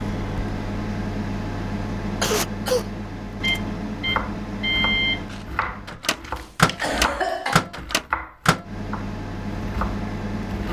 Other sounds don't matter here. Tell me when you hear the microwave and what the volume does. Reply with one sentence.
You can hear the microwave from 0.0 to 10.6 s, getting louder then quieter.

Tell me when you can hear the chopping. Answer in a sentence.
You can hear the chopping from 4.0 to 10.6 s.